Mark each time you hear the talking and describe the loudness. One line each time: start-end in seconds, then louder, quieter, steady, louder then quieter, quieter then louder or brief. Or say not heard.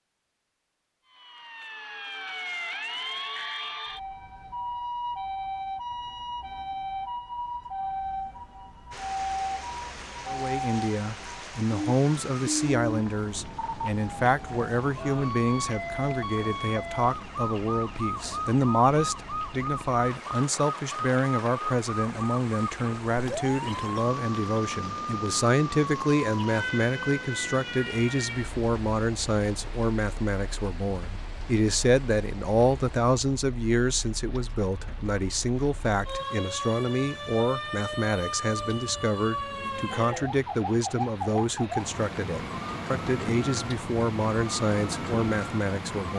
10.2-46.1 steady.